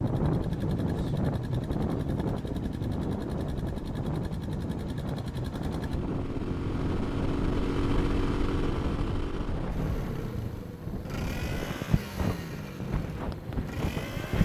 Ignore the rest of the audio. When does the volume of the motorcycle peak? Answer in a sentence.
The loudest moment of the motorcycle is at 8 seconds.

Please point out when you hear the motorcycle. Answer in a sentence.
You can hear the motorcycle from 0.0 to 14.4 s.